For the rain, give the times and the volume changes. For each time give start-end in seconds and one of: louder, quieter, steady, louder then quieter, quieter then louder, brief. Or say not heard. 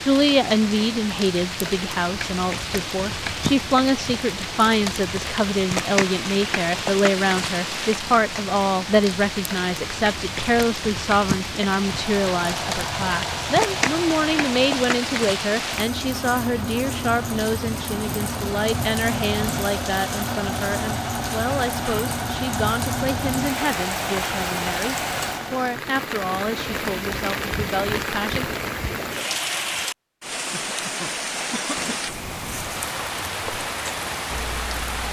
0.0-35.0 steady.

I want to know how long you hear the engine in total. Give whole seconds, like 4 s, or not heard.
14 s.